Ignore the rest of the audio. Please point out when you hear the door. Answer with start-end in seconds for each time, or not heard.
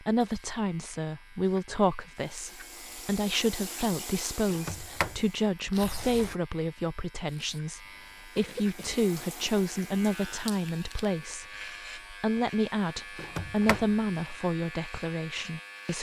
4.5-6.3, 13.2-13.9.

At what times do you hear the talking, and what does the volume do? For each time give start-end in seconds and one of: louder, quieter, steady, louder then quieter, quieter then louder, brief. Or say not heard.
0.0-15.9 steady.